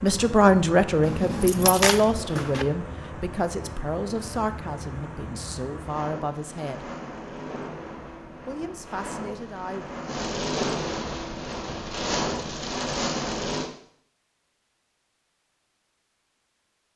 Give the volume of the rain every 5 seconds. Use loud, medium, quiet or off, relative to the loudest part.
medium, medium, loud, off.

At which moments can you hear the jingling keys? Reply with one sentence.
You can hear the jingling keys from 1.0 to 2.6 s.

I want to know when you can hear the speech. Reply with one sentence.
The speech can be heard from 0.0 to 6.9 s and from 8.4 to 9.8 s.